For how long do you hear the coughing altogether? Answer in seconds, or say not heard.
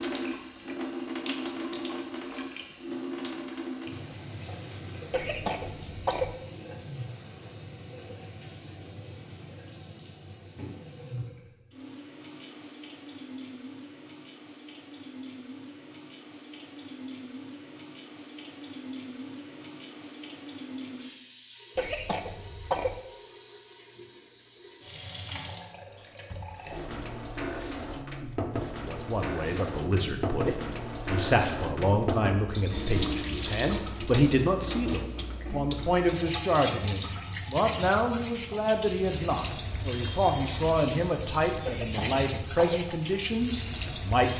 4 s.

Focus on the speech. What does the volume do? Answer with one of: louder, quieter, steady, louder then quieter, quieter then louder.
steady.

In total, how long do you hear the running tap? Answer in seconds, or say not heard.
44 s.